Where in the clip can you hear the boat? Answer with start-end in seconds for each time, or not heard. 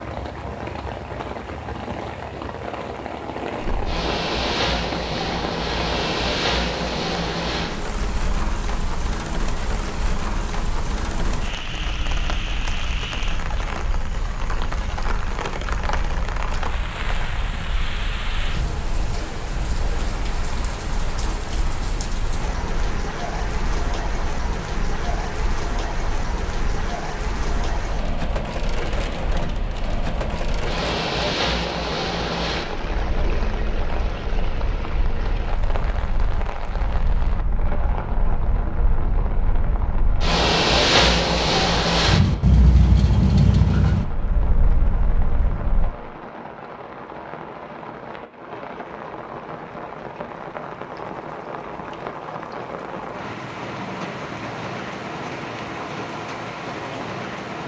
3.6-46.0.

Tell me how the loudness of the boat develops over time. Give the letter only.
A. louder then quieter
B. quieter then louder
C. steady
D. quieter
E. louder
B.